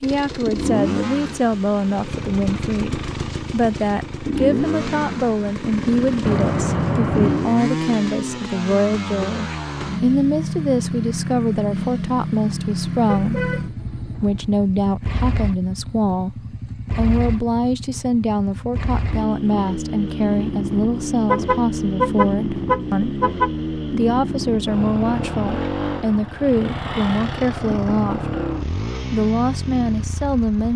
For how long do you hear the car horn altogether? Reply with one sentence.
The car horn can be heard for 5 seconds in total.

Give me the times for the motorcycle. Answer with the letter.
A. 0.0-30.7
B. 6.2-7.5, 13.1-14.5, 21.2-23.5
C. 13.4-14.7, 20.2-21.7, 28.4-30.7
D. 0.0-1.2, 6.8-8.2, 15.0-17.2
A.